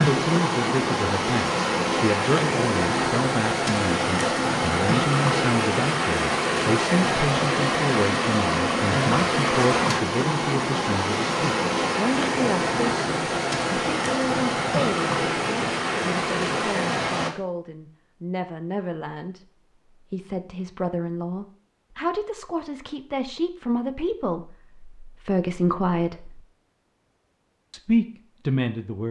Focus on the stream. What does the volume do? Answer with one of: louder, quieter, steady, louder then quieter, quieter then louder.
steady.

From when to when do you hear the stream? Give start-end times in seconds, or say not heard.
0.0-17.3.